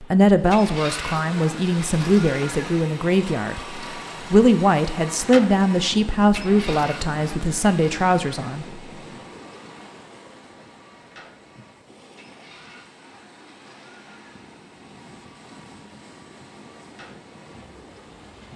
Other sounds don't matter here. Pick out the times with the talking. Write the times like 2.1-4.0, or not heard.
0.0-8.7.